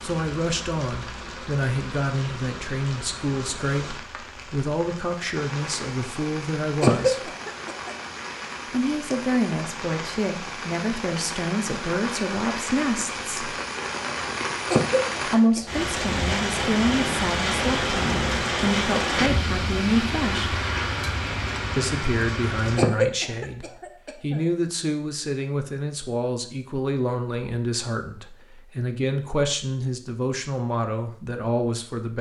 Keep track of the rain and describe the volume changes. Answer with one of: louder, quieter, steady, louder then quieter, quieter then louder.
louder.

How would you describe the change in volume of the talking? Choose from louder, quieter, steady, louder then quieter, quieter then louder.
steady.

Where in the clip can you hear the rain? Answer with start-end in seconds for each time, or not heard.
0.0-22.9.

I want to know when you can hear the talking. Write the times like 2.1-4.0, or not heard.
0.0-7.3, 8.7-13.3, 15.2-20.6, 21.8-32.1.